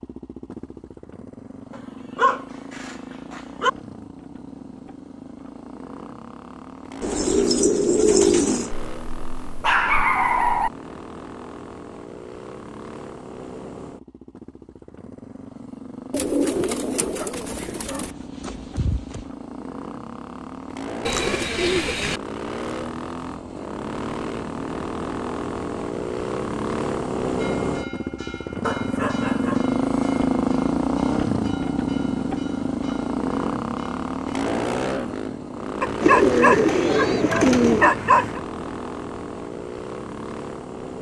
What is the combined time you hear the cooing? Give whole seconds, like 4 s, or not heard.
7 s.